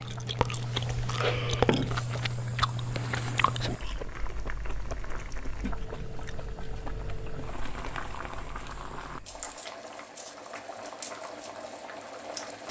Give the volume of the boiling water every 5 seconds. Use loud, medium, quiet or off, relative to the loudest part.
medium, loud, loud.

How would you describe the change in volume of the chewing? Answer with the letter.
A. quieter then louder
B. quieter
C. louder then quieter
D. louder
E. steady
B.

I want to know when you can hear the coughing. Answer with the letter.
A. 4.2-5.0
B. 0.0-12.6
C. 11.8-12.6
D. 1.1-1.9
D.